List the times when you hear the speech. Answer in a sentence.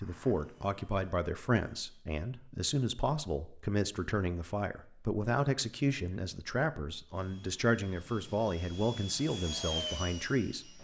You can hear the speech from 0.0 to 10.8 s.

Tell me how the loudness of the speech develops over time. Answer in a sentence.
The loudness of the speech stays about the same.